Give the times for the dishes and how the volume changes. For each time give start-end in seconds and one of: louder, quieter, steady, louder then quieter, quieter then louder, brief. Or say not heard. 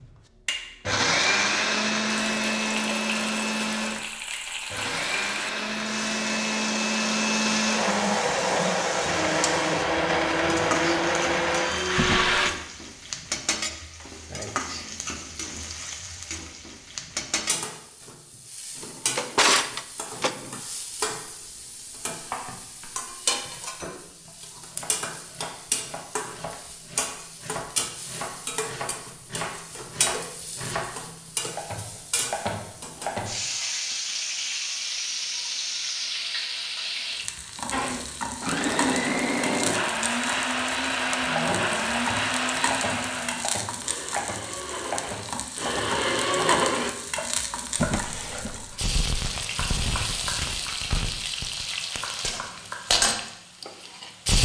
not heard.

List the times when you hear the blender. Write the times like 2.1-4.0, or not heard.
0.0-12.5, 37.7-47.0.